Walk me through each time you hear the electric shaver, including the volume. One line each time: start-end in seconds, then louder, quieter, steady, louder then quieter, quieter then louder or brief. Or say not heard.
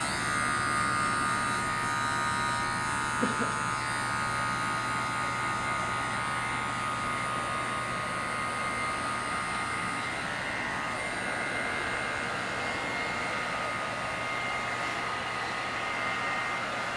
0.0-16.9 quieter.